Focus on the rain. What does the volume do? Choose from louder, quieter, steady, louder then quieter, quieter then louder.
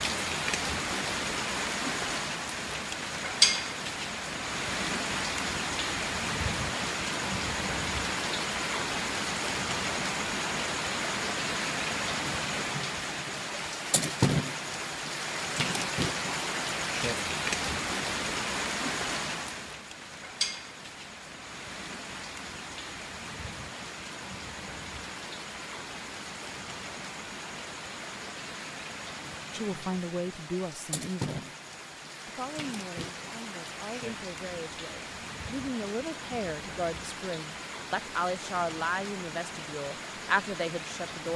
quieter.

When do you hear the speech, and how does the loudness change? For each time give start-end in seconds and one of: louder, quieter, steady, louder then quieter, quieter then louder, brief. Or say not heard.
29.5-31.5 brief
32.2-41.3 louder.